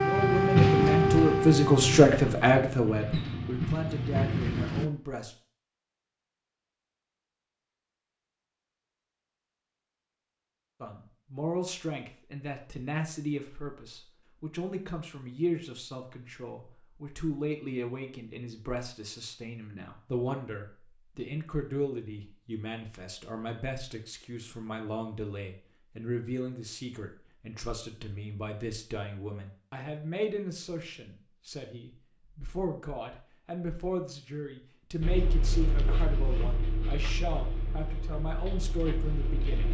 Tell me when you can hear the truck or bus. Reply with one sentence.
The truck or bus can be heard from 0.0 to 4.9 s and from 35.0 to 39.6 s.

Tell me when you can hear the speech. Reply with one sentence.
The speech can be heard from 0.0 to 5.3 s and from 10.8 to 39.6 s.